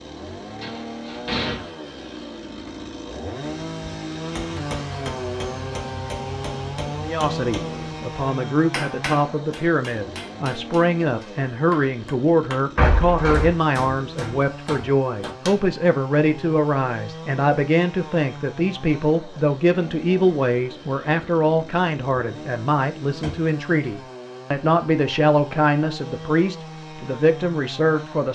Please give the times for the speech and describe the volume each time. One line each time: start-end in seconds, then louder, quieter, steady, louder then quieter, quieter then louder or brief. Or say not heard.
7.0-28.2 steady.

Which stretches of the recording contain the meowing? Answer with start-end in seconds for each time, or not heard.
not heard.